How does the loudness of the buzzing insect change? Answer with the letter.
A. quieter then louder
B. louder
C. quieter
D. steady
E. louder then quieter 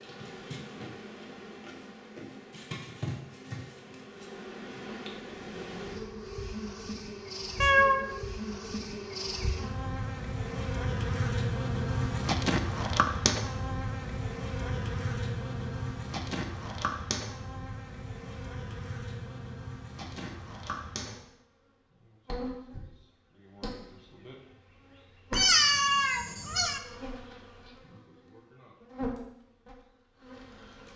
E.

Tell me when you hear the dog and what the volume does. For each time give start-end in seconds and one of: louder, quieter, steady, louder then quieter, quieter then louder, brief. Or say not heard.
not heard.